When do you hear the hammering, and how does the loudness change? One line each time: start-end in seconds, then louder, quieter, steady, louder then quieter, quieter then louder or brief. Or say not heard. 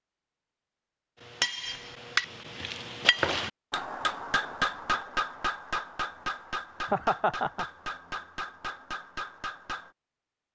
1.2-9.9 quieter.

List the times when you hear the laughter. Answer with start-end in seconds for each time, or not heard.
6.9-7.7.